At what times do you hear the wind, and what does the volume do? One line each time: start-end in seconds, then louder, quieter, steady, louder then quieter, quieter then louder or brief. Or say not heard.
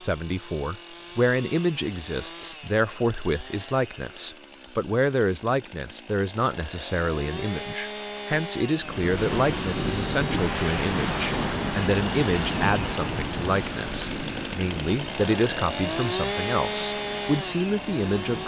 8.8-18.4 quieter.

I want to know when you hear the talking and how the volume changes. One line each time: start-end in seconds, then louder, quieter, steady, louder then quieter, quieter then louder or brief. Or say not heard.
0.0-18.4 steady.